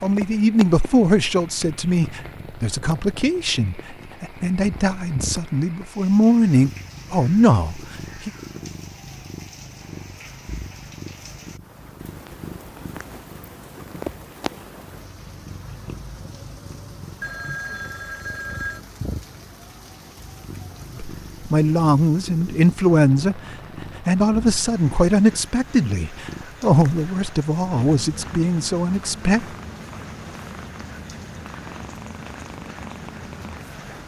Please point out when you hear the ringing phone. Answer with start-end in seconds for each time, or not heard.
17.2-18.9.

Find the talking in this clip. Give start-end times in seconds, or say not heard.
0.0-8.3, 20.9-29.4.